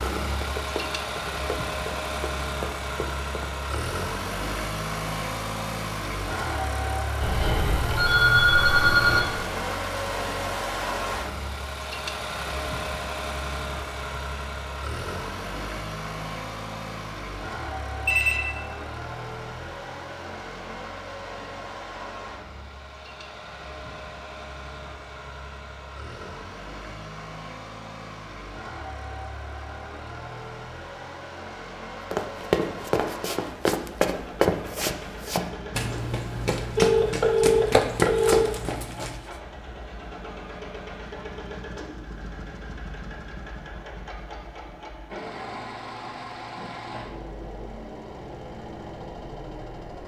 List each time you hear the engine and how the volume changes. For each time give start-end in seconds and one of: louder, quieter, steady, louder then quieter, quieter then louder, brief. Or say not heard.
0.0-50.0 quieter.